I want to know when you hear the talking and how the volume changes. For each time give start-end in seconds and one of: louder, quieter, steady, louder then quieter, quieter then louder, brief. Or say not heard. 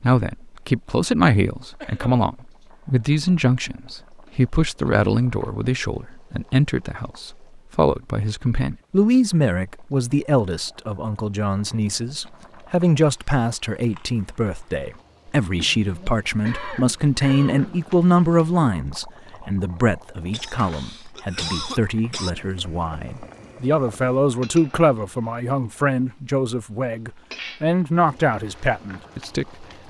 0.0-29.8 steady.